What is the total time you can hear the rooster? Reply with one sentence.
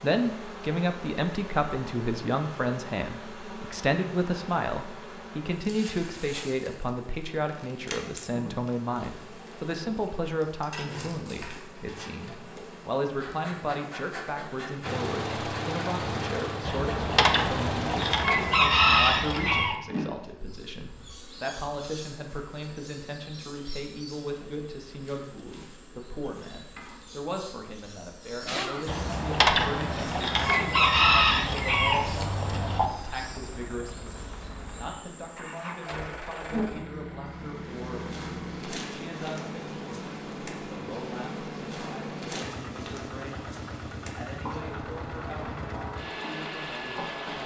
The rooster can be heard for 7 seconds in total.